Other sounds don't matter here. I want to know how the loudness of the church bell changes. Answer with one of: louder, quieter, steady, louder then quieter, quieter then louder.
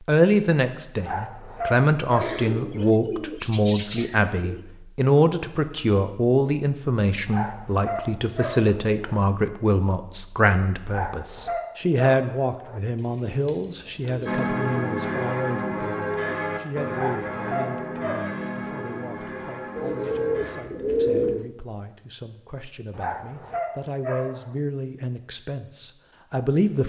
quieter.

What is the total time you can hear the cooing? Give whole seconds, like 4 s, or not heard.
6 s.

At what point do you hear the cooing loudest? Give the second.
21 s.